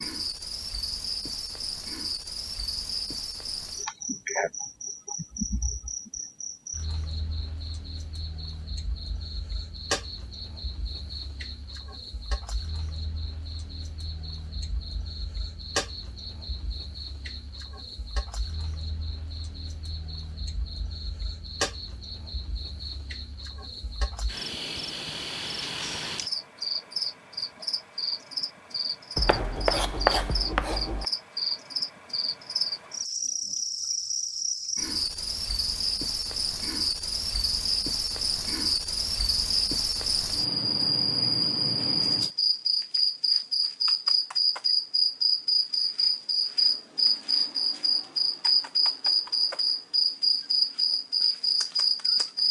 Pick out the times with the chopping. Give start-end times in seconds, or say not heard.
29.1-31.1.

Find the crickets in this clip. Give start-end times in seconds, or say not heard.
0.0-52.4.